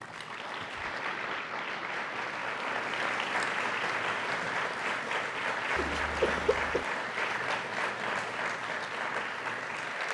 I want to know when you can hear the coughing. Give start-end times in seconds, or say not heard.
5.8-6.8.